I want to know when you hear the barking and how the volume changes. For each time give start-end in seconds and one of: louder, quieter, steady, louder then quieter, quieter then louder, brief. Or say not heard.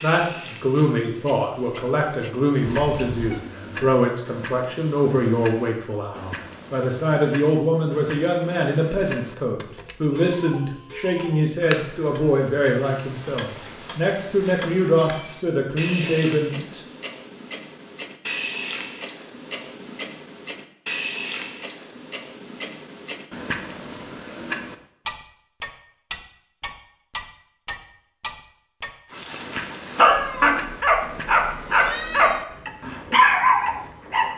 29.1-34.3 steady.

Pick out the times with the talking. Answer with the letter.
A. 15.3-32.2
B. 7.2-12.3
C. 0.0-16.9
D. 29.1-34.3
C.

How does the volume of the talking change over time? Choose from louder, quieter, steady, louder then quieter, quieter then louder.
steady.